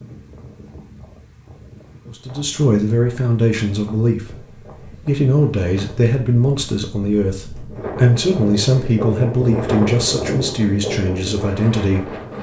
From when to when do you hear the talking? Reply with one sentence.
The talking can be heard from 2.0 to 4.5 s and from 5.0 to 12.1 s.